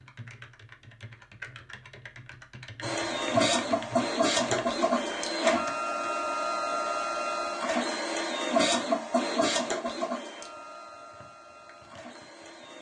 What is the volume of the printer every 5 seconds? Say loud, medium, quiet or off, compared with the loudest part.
loud, loud, quiet.